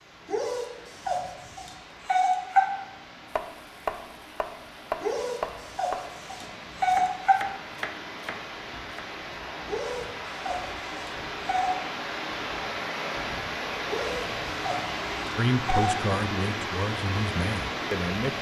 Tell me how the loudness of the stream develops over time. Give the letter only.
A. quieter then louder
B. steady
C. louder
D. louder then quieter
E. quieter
C.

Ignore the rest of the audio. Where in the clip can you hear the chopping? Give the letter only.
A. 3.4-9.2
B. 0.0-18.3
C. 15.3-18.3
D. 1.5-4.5
A.